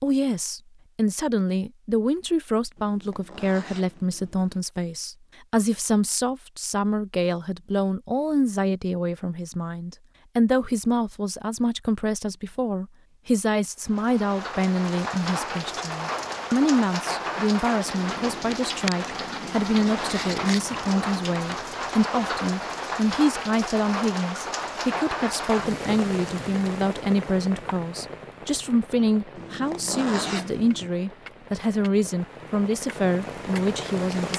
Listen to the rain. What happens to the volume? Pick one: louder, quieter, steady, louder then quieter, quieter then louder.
quieter.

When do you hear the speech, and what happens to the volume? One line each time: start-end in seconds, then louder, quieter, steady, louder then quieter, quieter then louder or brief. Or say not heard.
0.0-34.3 steady.